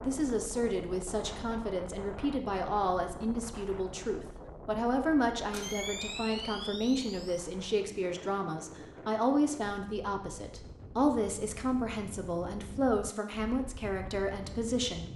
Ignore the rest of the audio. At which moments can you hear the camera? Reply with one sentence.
The camera can be heard from 5.5 to 7.4 s.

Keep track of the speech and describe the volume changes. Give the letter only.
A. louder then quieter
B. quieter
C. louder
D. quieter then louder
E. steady
E.